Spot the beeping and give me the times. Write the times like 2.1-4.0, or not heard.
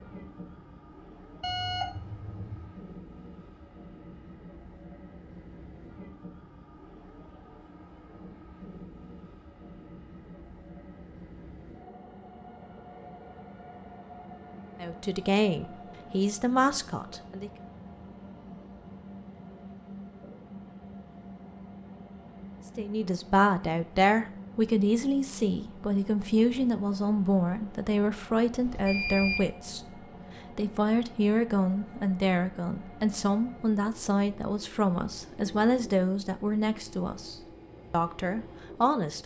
1.4-2.7, 28.6-29.6.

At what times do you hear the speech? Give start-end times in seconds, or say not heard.
14.8-17.5, 22.8-39.2.